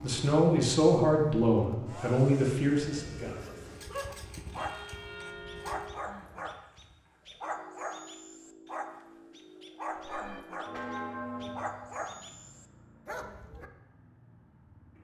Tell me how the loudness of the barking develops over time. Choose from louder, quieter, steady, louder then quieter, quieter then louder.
steady.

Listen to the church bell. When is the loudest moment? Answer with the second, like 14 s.
11 s.